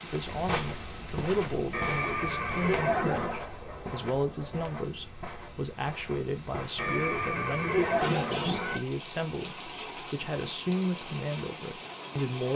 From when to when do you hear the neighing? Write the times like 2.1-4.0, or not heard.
1.7-3.4, 6.8-8.8.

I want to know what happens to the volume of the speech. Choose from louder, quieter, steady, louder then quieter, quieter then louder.
steady.